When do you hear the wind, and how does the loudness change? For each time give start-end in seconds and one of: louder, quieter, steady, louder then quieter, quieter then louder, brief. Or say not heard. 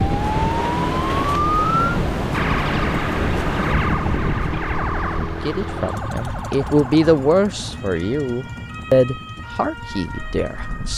0.0-10.9 quieter.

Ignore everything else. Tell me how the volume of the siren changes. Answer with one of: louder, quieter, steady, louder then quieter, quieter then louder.
quieter.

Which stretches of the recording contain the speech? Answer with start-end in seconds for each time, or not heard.
5.2-10.9.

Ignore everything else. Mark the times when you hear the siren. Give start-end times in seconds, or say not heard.
0.0-10.9.